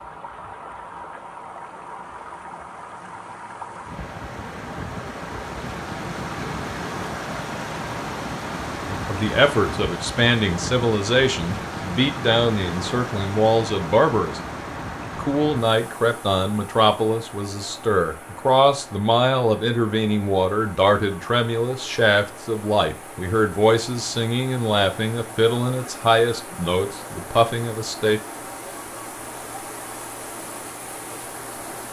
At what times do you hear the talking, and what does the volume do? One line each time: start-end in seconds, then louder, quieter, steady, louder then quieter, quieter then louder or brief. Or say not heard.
8.9-14.4 steady
15.2-28.2 steady.